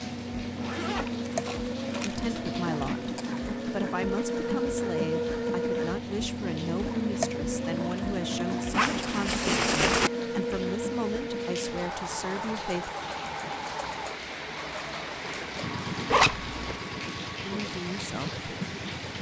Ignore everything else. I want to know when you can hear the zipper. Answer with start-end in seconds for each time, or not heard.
0.6-2.3, 8.7-10.1, 16.1-16.8.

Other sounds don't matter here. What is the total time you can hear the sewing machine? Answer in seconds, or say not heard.
19 s.